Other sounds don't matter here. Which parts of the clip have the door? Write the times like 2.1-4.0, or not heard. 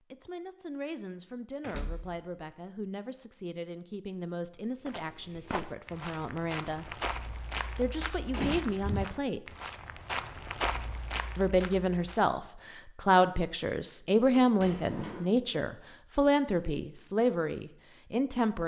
1.6-2.5, 8.3-8.8, 14.6-15.2.